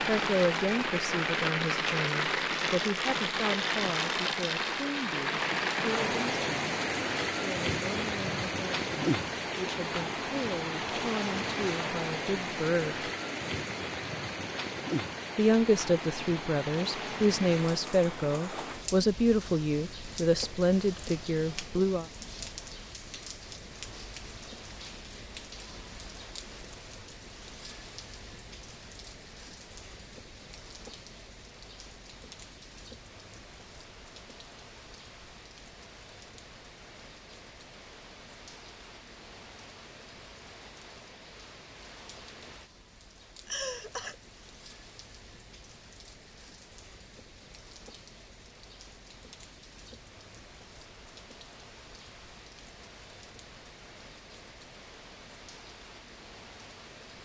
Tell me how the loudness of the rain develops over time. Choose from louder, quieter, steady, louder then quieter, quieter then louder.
quieter.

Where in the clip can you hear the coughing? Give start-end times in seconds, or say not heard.
43.5-44.1.